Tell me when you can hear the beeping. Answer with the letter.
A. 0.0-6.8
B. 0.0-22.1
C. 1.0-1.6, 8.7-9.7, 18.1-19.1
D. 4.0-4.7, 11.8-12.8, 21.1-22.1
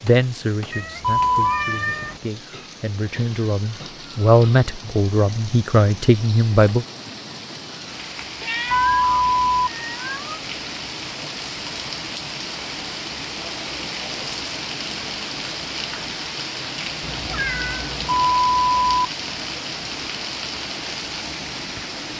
C.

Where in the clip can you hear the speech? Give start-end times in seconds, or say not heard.
0.0-6.8.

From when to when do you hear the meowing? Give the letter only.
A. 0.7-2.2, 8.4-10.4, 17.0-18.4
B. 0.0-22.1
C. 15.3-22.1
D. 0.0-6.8
A.